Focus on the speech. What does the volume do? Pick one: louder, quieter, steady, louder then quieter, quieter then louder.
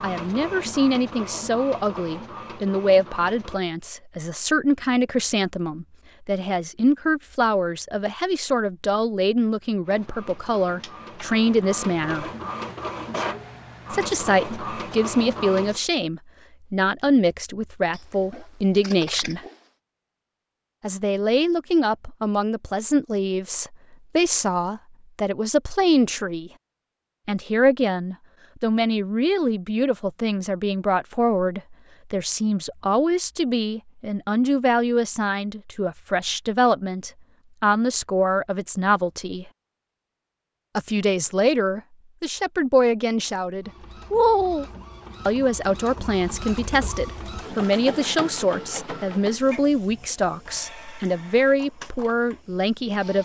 steady.